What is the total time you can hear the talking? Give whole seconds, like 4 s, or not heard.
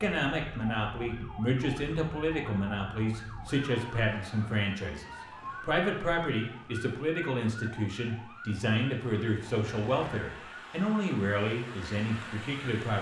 13 s.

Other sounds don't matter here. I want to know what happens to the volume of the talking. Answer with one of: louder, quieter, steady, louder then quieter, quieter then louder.
steady.